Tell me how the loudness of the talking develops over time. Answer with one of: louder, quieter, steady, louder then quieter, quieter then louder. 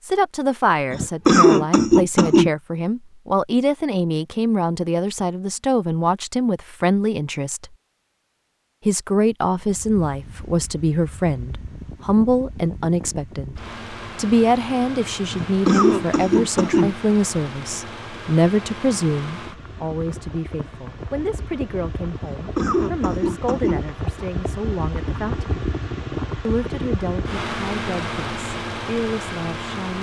quieter.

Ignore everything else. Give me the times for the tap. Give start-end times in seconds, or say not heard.
not heard.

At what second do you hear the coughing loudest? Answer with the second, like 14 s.
1 s.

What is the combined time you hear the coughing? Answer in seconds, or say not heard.
5 s.